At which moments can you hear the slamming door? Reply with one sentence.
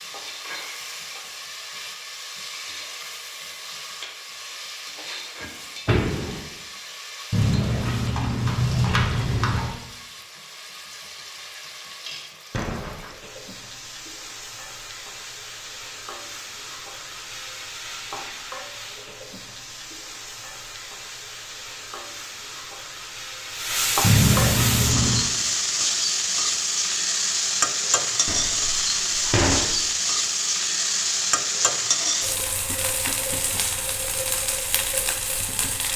The slamming door can be heard from 5.4 to 6.5 s, from 12.5 to 13.1 s and from 28.2 to 29.7 s.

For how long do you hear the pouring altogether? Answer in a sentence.
You can hear the pouring for 4 seconds altogether.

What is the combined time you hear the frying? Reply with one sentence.
You can hear the frying for 36 seconds altogether.